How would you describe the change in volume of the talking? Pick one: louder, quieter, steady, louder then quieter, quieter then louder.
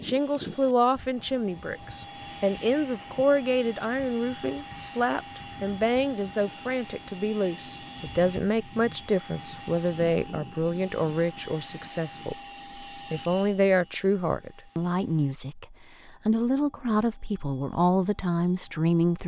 steady.